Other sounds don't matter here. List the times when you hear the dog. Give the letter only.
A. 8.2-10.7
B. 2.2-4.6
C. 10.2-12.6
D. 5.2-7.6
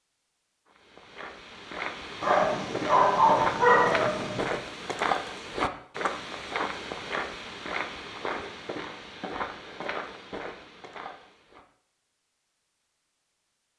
B.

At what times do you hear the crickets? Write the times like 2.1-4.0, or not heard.
not heard.